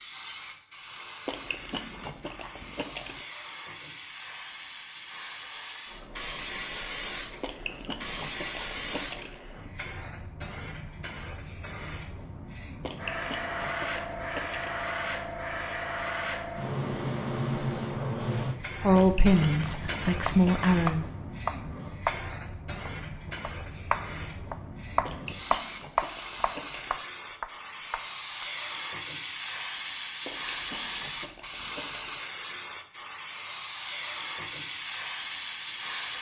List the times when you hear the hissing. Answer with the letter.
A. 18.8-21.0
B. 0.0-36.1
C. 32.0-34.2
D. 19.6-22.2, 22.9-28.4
B.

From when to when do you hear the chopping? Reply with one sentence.
The chopping can be heard from 19.6 to 22.2 s and from 22.9 to 28.4 s.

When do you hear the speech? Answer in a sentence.
You can hear the speech from 18.8 to 21.0 s.